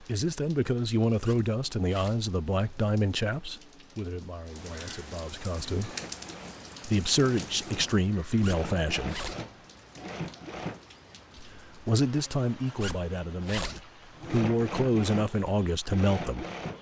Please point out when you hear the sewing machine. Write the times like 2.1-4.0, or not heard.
5.8-10.9, 14.2-16.7.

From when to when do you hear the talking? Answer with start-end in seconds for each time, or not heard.
0.0-6.0, 6.8-9.2, 11.3-16.4.